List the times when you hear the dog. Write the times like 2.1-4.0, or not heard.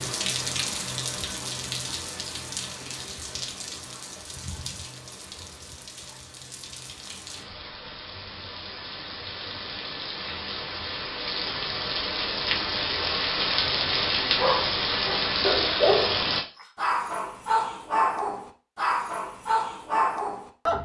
14.3-20.7.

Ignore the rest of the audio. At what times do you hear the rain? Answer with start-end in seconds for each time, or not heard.
0.0-16.4.